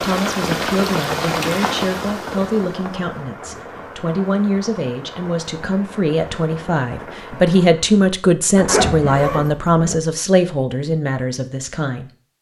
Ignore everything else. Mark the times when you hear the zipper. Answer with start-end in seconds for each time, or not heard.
8.6-9.9.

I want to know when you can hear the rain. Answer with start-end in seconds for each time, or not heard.
0.0-8.1.